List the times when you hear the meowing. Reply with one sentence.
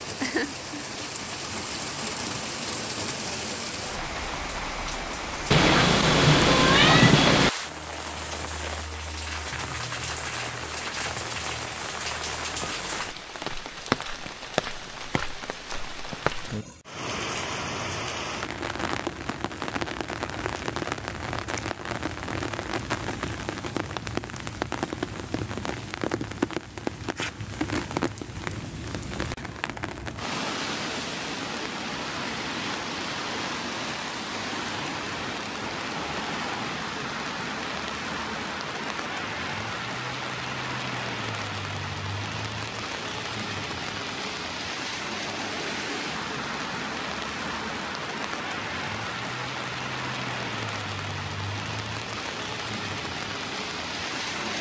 The meowing can be heard from 5.5 to 7.5 s.